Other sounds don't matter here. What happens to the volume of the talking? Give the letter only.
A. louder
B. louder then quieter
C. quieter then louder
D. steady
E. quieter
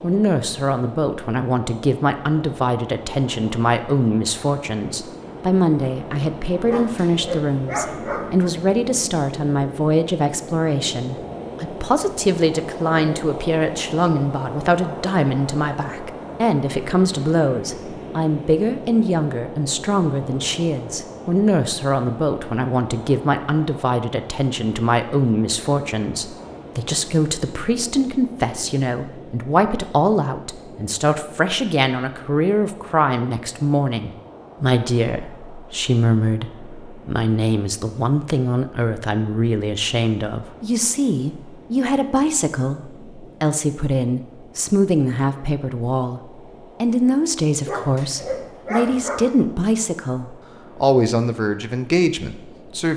D.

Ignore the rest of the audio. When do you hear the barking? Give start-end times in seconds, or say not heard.
6.7-8.5, 47.6-49.3.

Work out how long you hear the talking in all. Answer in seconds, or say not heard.
53 s.